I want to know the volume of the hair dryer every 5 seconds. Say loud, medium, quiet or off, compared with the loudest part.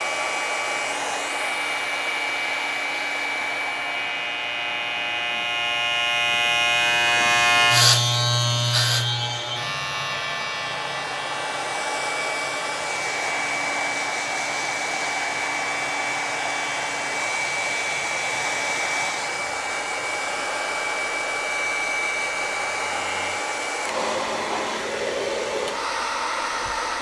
loud, medium, loud, loud, loud, loud.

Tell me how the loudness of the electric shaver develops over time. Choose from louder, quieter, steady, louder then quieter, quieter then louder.
louder then quieter.